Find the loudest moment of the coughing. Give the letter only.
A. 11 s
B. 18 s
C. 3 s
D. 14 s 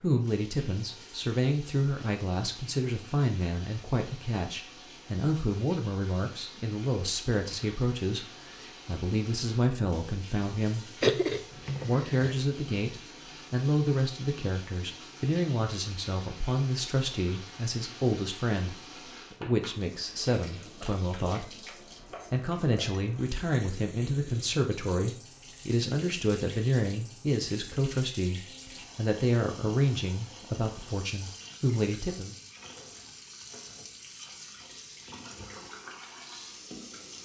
A.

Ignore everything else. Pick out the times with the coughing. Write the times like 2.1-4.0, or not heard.
11.0-12.4.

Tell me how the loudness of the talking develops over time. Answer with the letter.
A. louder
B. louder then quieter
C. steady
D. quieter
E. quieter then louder
C.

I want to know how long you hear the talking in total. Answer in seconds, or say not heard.
31 s.